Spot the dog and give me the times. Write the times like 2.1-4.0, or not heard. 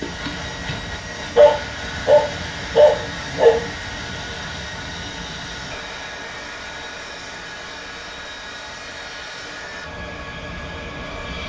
0.0-4.2.